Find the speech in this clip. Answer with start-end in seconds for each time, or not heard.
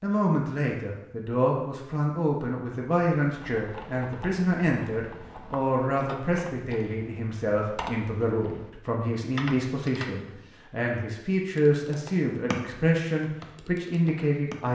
0.0-14.7.